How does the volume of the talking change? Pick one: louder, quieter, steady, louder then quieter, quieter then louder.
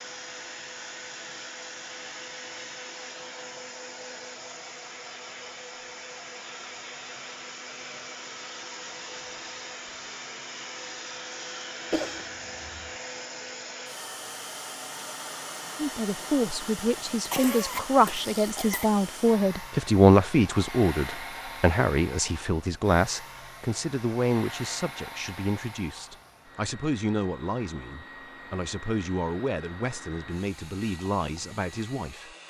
quieter.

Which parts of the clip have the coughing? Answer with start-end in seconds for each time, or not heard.
11.9-12.9, 17.2-18.9.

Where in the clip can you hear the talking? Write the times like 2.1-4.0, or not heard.
15.8-32.3.